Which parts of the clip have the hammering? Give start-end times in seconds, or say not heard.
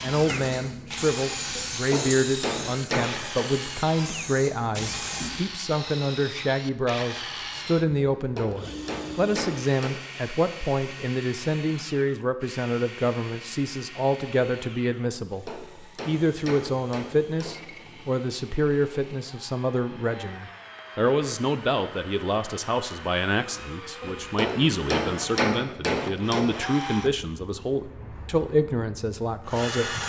1.6-3.5, 8.2-9.9, 15.2-17.8, 24.0-26.9.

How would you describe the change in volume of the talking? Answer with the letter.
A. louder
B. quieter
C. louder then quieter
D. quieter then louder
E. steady
E.